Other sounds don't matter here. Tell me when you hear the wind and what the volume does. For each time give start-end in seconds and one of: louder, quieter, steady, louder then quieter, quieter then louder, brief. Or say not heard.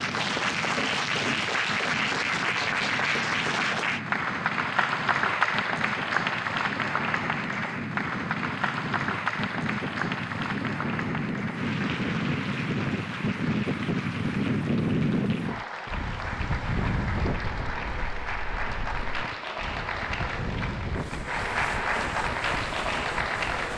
0.0-23.7 louder then quieter.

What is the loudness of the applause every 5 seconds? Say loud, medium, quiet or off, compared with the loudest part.
loud, loud, medium, medium, loud.